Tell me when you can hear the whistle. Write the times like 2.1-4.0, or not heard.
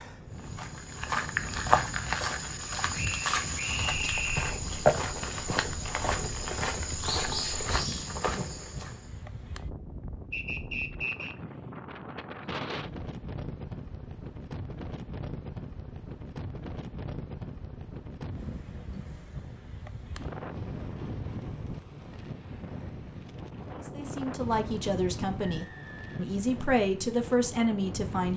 3.0-4.6, 10.3-11.3, 25.5-26.3.